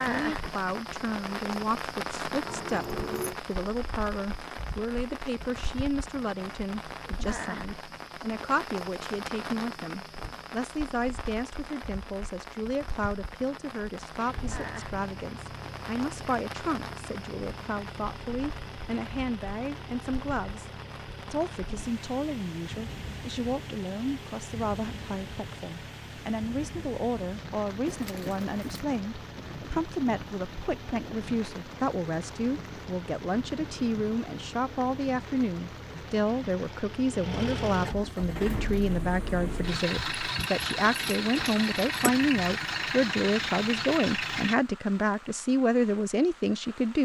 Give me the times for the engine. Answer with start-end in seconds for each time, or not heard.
14.2-44.5.